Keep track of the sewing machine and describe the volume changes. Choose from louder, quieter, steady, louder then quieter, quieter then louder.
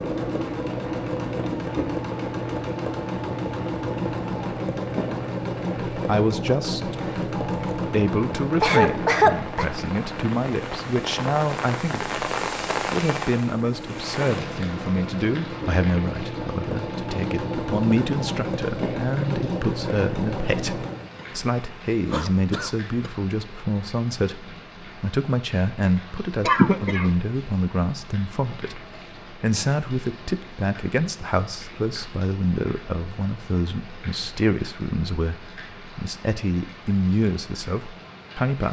quieter then louder.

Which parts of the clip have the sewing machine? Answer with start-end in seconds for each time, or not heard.
0.0-21.1.